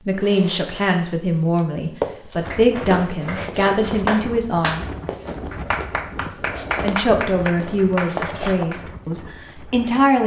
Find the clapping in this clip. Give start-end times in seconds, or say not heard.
2.5-8.8.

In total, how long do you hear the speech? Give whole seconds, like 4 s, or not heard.
8 s.